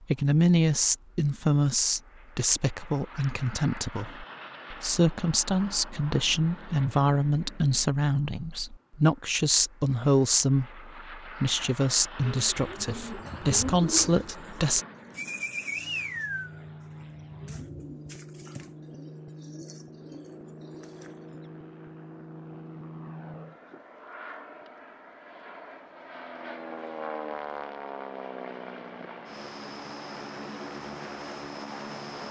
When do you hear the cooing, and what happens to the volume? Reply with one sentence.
You can hear the cooing from 12.2 to 21.5 s, getting quieter.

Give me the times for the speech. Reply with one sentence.
The speech can be heard from 0.1 to 14.8 s.